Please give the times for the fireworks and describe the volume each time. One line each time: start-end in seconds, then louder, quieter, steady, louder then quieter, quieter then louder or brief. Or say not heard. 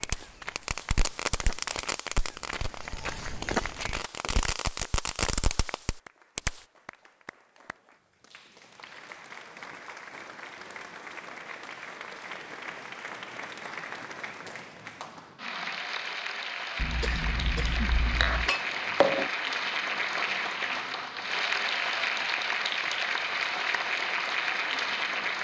0.0-6.6 quieter then louder.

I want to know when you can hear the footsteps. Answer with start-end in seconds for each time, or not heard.
0.0-4.9.